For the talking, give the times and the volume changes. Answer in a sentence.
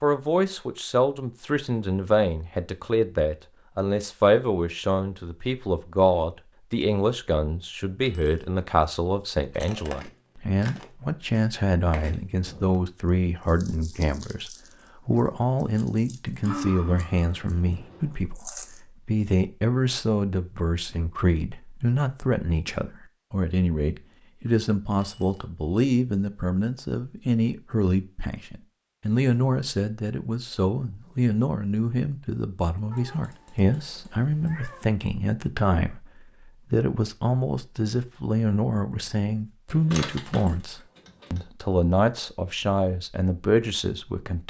You can hear the talking from 0.0 to 44.4 s, at a steady volume.